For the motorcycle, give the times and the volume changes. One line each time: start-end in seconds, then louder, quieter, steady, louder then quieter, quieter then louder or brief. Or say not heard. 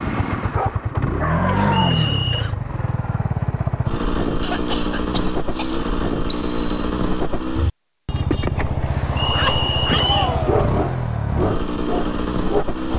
0.0-12.9 steady.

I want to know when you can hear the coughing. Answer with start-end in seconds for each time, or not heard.
1.4-2.7, 4.4-5.9, 9.9-10.6.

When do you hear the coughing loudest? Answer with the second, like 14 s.
10 s.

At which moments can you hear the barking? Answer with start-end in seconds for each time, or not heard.
0.0-2.4, 8.8-12.8.